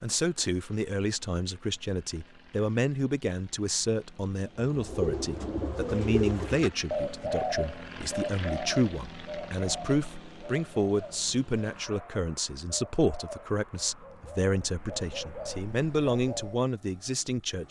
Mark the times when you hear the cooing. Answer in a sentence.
The cooing can be heard from 4.7 to 16.6 s.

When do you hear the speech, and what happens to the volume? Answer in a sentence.
You can hear the speech from 0.0 to 17.6 s, at a steady volume.